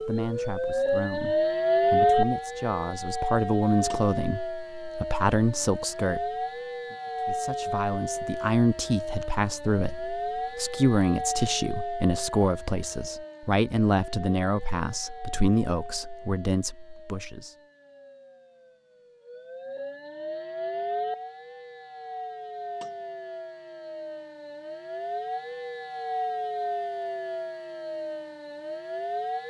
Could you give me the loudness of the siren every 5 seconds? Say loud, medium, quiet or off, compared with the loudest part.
loud, medium, medium, quiet, medium, medium.